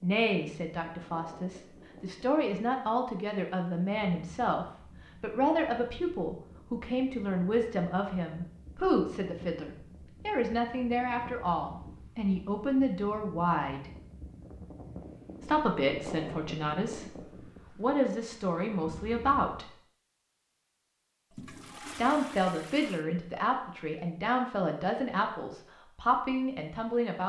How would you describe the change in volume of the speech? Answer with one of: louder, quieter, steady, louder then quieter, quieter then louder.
steady.